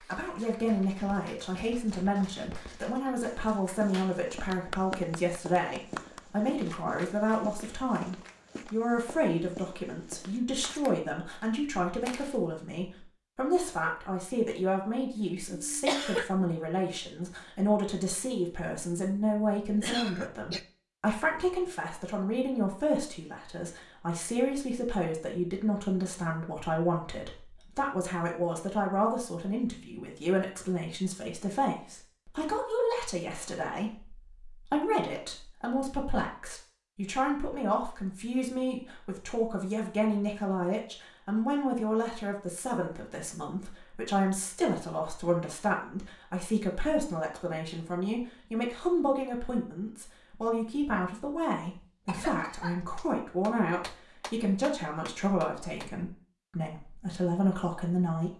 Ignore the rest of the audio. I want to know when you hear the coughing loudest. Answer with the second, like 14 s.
16 s.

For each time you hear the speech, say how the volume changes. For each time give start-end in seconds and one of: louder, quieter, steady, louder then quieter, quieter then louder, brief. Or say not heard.
0.1-58.3 steady.